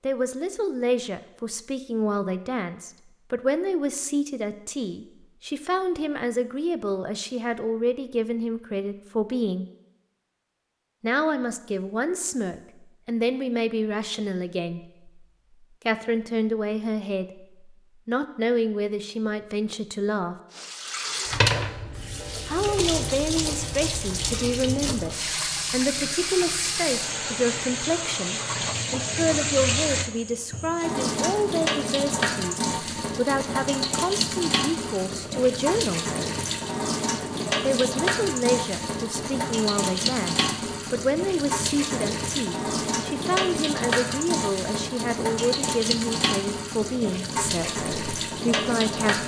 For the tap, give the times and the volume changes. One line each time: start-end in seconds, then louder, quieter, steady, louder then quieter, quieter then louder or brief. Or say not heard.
20.5-49.2 steady.